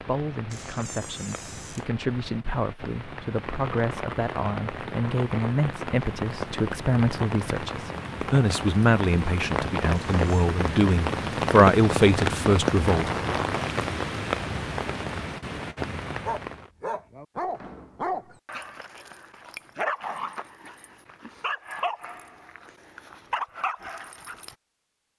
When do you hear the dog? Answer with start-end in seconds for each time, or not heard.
16.2-24.6.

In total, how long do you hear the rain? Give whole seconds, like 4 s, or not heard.
17 s.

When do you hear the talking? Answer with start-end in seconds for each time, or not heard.
0.0-13.3.